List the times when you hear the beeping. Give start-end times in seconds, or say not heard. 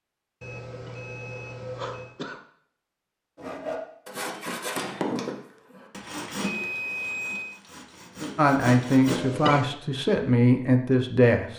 0.4-2.1, 6.4-7.6.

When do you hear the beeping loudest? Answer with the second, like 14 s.
7 s.